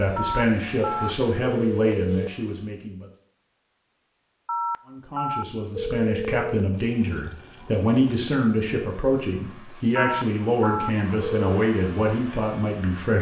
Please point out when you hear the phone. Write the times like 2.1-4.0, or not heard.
0.1-2.3, 4.5-6.6, 9.9-11.4.